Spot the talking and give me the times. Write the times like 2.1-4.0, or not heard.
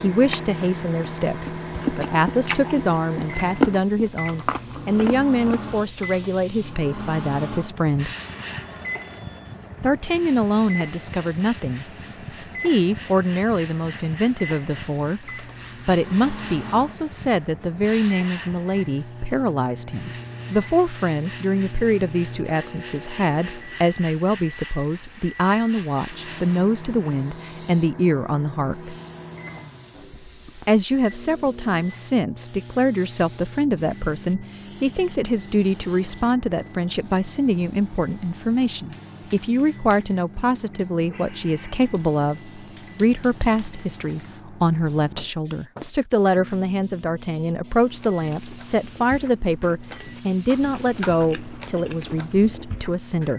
0.0-8.1, 9.8-11.8, 12.6-28.9, 30.6-53.3.